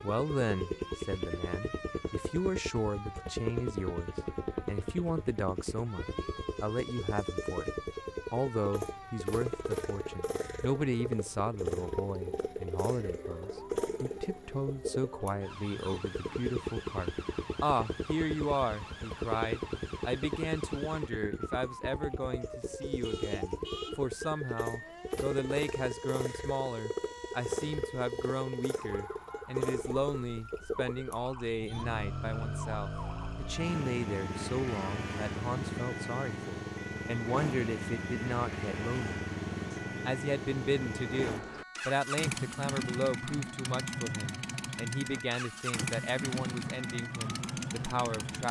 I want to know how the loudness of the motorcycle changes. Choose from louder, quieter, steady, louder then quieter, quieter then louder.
steady.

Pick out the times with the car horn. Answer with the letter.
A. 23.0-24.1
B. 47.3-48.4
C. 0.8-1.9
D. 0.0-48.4
A.